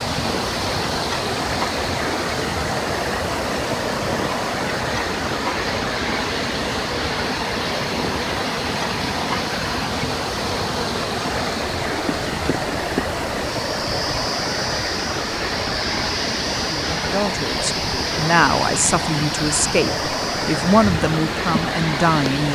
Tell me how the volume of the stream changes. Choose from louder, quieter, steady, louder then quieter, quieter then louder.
steady.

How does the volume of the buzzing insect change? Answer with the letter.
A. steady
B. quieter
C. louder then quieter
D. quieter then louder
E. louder
A.